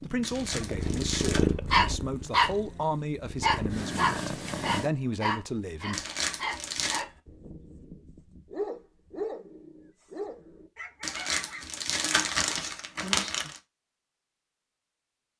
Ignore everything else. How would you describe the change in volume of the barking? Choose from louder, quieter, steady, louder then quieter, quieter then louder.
quieter.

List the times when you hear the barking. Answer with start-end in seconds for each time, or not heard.
1.2-11.7.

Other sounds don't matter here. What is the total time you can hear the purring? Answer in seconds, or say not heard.
5 s.